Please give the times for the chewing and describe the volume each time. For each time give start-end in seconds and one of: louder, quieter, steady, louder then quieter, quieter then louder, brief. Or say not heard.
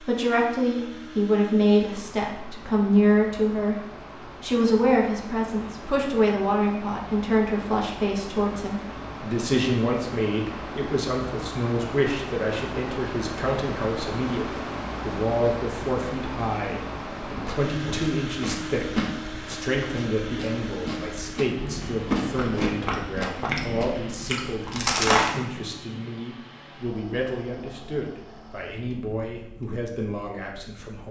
17.2-25.4 quieter then louder.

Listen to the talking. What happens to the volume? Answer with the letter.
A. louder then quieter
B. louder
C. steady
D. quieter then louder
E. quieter
E.